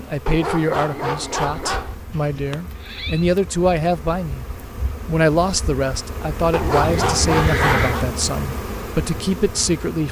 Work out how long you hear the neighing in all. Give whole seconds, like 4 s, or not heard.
2 s.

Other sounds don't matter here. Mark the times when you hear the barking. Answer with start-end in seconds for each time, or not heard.
0.2-1.9, 6.5-8.1.